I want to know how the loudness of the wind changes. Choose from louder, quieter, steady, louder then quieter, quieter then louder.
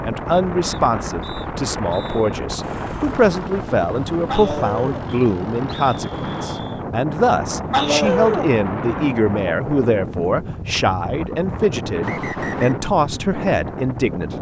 steady.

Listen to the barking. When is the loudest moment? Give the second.
8 s.